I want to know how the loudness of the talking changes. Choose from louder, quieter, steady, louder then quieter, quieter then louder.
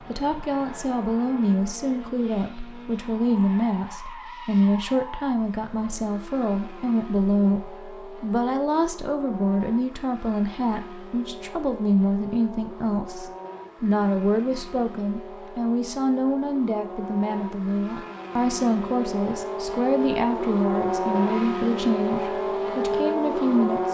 steady.